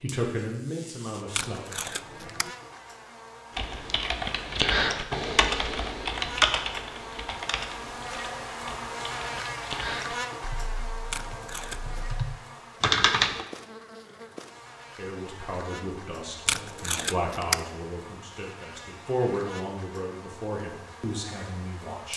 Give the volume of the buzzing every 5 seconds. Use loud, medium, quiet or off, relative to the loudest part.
medium, loud, loud, medium, medium.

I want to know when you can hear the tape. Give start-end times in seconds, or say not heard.
1.3-2.5, 11.1-12.1, 16.4-17.6.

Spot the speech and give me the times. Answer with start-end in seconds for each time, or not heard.
0.0-1.6, 14.9-22.1.